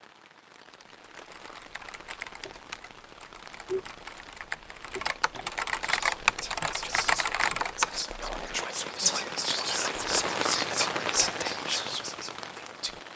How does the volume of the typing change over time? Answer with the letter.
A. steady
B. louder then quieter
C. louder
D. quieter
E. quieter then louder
C.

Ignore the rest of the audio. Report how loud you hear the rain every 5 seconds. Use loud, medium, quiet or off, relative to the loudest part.
quiet, medium, loud.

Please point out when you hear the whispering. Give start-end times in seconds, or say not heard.
5.8-13.1.